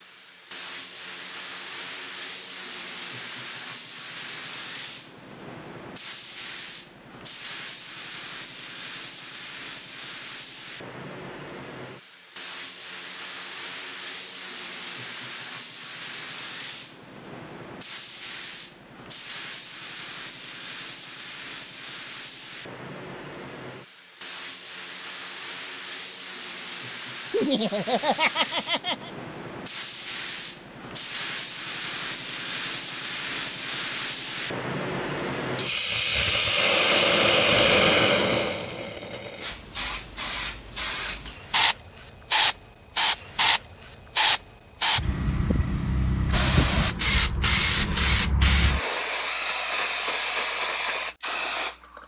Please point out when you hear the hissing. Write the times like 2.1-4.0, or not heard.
0.0-52.0.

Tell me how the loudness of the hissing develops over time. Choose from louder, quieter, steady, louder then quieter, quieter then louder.
louder.